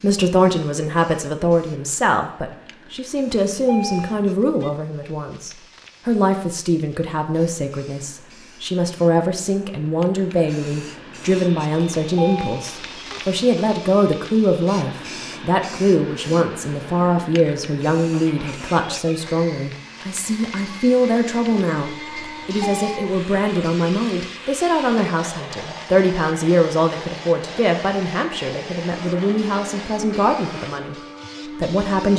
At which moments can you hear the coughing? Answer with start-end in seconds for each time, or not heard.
not heard.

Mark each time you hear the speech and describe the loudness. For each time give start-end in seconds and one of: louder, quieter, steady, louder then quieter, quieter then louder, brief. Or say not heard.
0.0-30.9 steady
31.6-32.1 brief.